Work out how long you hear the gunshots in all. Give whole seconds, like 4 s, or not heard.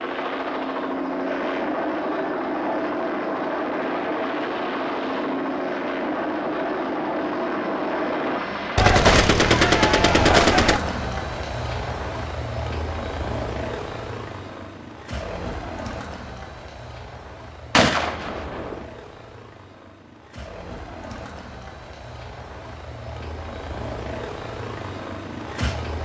3 s.